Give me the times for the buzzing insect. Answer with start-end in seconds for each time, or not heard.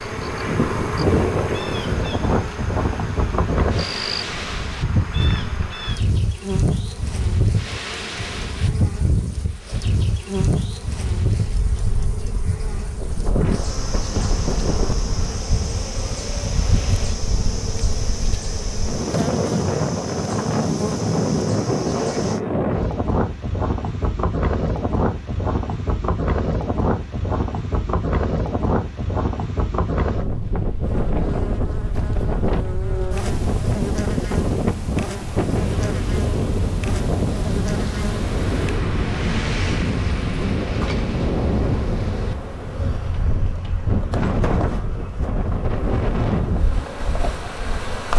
0.0-22.4, 30.8-48.1.